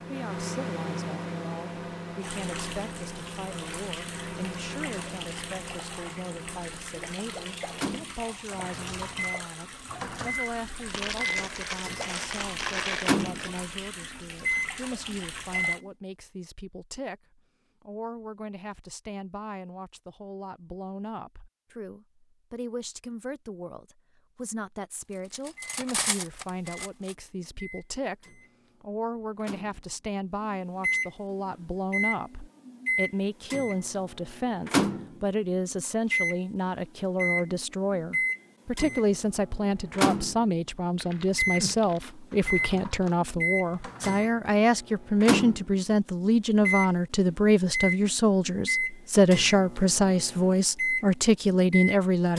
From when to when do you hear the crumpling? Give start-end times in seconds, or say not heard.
10.8-13.5, 41.0-42.1.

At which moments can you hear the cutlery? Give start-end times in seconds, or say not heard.
25.1-27.1.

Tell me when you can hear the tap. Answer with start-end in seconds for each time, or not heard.
2.2-15.8.